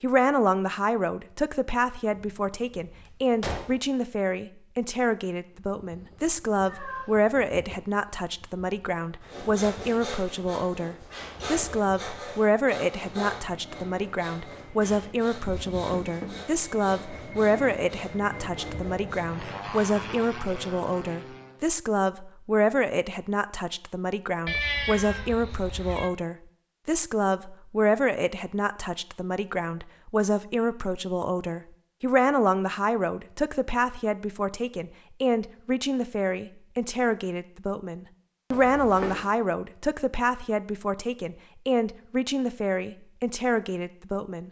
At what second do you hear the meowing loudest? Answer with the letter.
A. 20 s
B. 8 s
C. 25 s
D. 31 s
C.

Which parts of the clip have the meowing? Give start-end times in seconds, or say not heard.
6.7-7.2, 24.4-26.1.